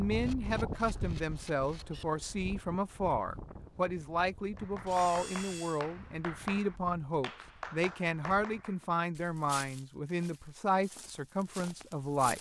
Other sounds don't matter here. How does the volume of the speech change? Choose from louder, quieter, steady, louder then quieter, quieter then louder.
steady.